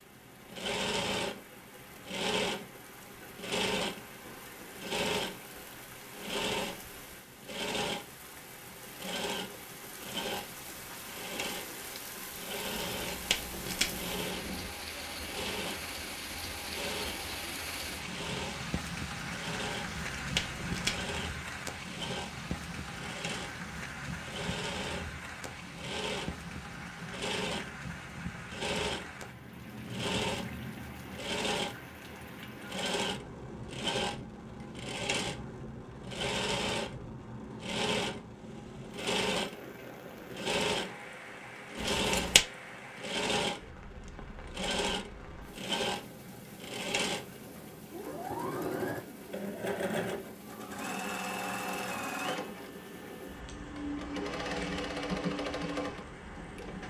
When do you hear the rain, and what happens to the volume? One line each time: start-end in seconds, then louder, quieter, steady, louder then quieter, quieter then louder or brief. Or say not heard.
0.0-56.8 louder then quieter.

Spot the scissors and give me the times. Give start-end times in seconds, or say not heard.
12.9-14.7, 19.8-21.1, 41.8-42.5.